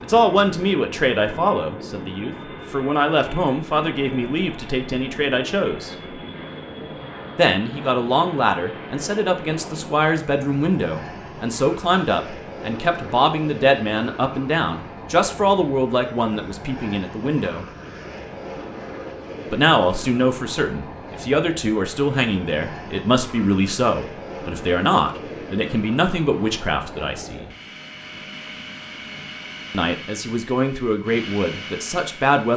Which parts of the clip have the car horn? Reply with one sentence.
The car horn can't be heard in this clip.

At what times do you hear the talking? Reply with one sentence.
You can hear the talking from 0.0 to 5.9 s, from 7.3 to 17.6 s, from 19.5 to 27.4 s and from 29.7 to 32.5 s.